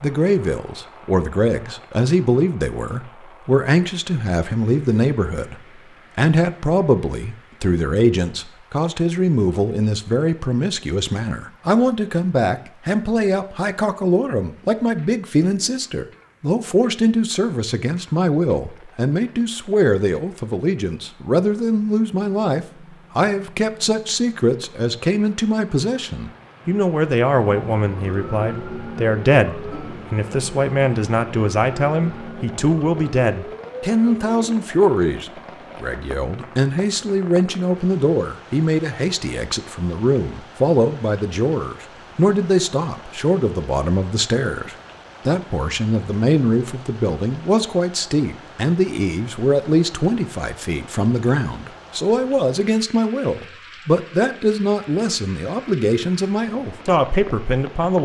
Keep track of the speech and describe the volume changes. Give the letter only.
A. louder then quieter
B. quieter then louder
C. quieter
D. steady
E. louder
D.